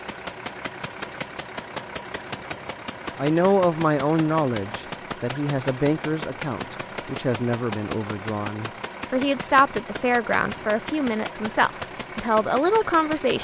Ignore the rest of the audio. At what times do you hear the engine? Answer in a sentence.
The engine can be heard from 0.0 to 13.3 s.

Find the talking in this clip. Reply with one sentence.
The talking can be heard from 3.1 to 13.3 s.